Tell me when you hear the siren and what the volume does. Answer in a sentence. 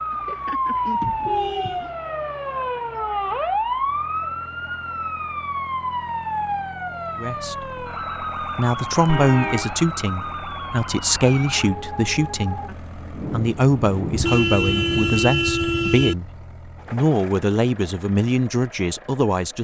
You can hear the siren from 0.0 to 12.7 s, getting quieter.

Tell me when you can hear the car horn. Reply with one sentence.
You can hear the car horn from 0.1 to 1.9 s, from 9.1 to 9.8 s and from 14.1 to 16.1 s.